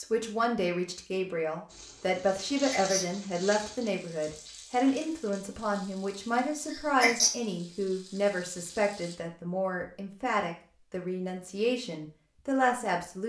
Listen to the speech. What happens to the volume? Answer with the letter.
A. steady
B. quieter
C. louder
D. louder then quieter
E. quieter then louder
A.